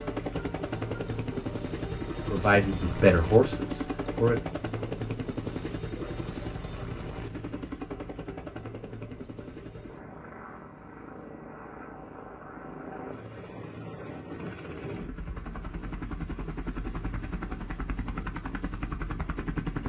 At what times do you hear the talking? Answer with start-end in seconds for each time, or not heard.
2.2-4.4.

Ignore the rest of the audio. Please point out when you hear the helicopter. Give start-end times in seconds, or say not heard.
0.0-19.8.